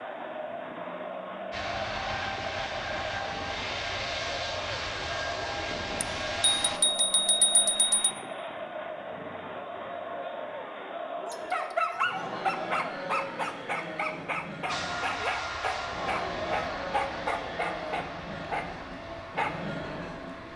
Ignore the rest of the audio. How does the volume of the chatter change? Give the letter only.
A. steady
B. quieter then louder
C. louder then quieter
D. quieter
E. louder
A.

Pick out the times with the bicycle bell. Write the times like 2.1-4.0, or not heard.
6.0-8.2.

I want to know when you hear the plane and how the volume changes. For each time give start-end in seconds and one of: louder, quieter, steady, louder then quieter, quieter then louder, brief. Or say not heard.
1.5-6.8 steady
14.7-20.5 quieter.